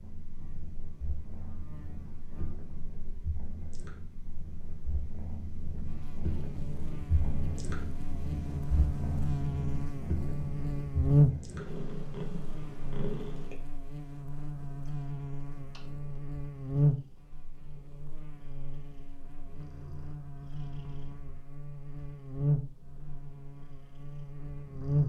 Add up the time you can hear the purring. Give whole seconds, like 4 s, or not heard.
25 s.